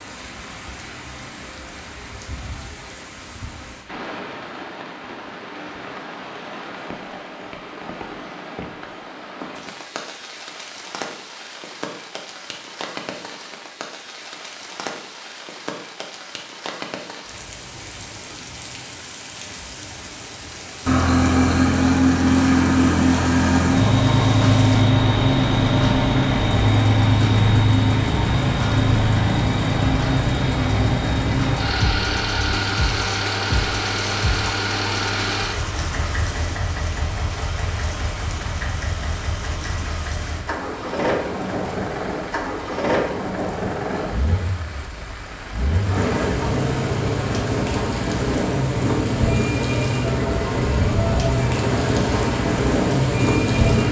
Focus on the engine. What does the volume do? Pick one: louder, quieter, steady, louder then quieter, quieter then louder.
quieter then louder.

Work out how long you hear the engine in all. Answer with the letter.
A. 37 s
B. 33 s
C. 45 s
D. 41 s
B.